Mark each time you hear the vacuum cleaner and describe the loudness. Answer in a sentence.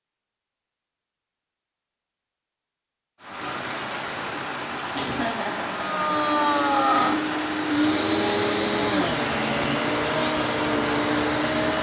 The vacuum cleaner can be heard from 5.7 to 11.7 s, at a steady volume.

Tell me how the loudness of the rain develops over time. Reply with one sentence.
The loudness of the rain stays about the same.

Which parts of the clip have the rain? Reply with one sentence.
You can hear the rain from 3.2 to 11.7 s.